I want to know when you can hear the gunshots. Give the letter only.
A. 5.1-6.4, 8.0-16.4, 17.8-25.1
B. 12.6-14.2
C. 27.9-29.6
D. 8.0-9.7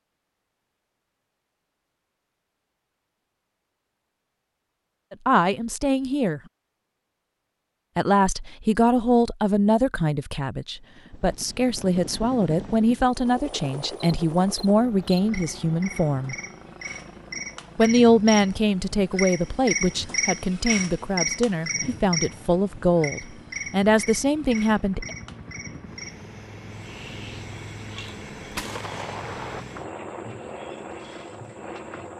C.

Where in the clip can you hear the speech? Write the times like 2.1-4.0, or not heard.
5.1-6.4, 8.0-16.4, 17.8-25.1.